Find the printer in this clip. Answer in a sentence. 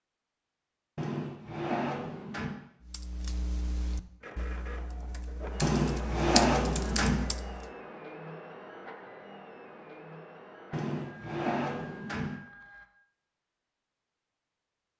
The printer can be heard from 4.2 to 12.9 s.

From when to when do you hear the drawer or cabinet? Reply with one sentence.
You can hear the drawer or cabinet from 0.9 to 2.5 s, from 5.6 to 7.2 s and from 10.7 to 12.4 s.